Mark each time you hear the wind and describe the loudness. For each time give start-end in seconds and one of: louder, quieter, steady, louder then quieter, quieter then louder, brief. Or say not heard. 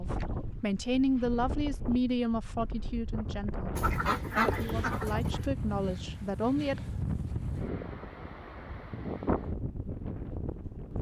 0.0-10.9 louder.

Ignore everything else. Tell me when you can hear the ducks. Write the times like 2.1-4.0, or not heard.
3.8-5.5.